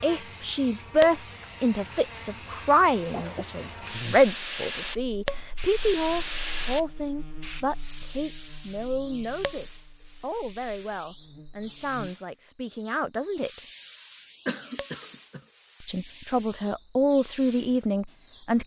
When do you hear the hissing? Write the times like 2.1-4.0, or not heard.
0.0-18.6.